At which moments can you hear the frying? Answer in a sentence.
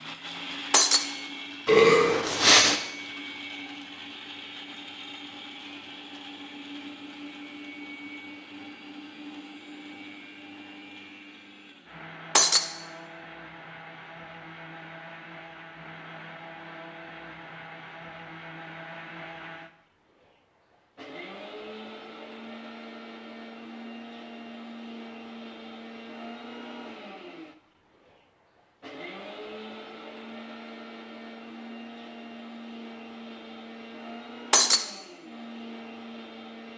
The frying can't be heard in this clip.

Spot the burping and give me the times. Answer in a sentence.
The burping can be heard from 1.6 to 2.8 s.